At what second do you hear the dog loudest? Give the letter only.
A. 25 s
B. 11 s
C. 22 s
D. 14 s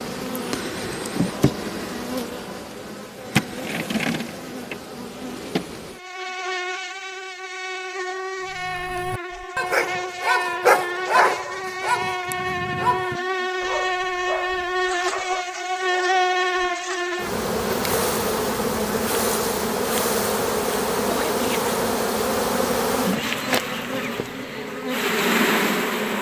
B.